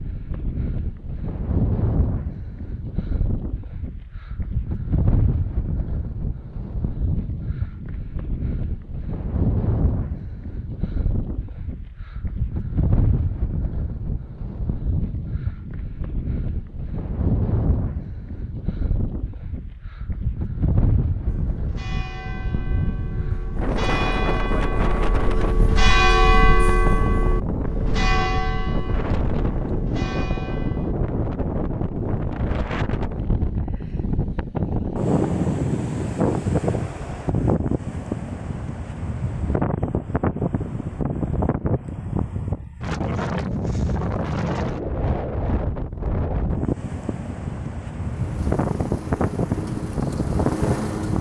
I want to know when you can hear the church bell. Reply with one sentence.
You can hear the church bell from 21.2 to 30.9 s.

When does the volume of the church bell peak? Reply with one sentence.
The loudest moment of the church bell is at 26 seconds.